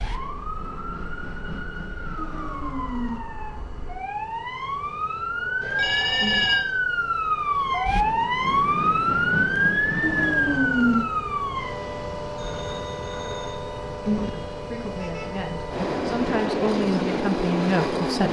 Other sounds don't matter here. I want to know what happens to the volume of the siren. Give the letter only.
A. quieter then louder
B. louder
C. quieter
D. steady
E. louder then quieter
E.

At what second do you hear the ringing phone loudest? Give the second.
6 s.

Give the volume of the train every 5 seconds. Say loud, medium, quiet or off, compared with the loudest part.
medium, medium, loud, loud.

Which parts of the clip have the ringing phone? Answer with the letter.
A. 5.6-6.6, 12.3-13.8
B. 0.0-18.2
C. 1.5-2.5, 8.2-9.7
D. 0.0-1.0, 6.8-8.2
A.